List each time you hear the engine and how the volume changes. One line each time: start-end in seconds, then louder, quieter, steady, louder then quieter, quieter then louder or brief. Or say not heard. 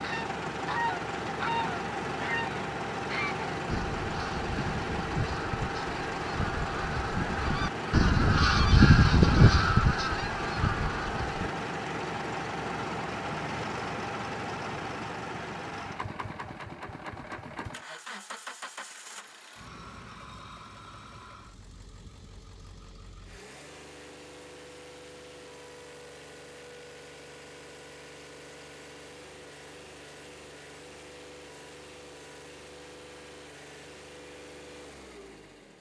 0.0-35.7 quieter.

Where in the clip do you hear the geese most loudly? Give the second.
9 s.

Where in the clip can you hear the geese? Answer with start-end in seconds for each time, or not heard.
0.0-11.5.